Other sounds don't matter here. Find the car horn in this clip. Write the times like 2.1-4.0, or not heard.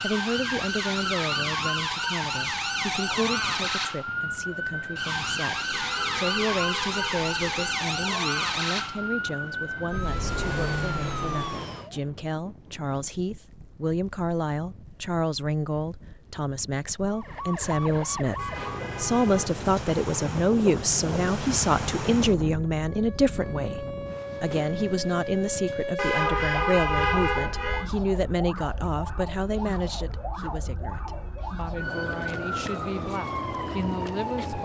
5.7-7.8, 18.4-19.5, 25.9-27.9.